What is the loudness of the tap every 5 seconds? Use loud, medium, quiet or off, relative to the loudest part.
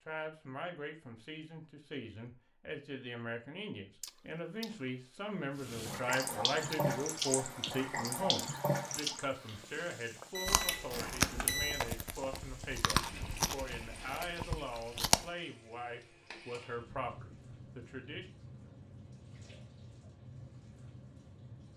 off, loud, quiet, quiet, quiet.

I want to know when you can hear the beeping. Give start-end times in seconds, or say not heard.
10.3-11.8.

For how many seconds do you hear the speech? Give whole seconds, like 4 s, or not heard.
18 s.